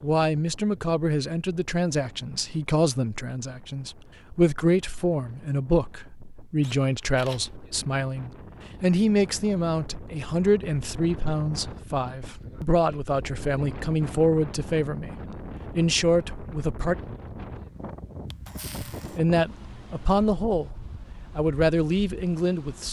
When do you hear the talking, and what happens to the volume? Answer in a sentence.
The talking can be heard from 0.0 to 15.2 s, at a steady volume; briefly from 15.8 to 16.9 s; briefly from 19.1 to 20.7 s; and briefly from 21.4 to 22.8 s.